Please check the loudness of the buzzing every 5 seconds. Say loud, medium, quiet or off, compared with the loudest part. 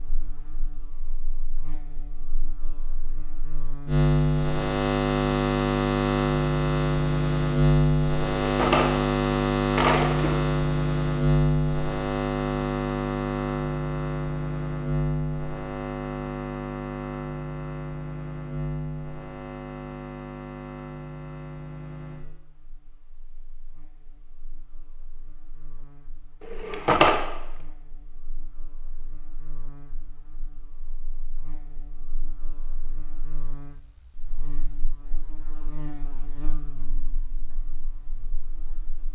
medium, loud, loud, medium, quiet, quiet, quiet, quiet.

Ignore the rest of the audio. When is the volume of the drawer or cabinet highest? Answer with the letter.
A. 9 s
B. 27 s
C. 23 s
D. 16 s
B.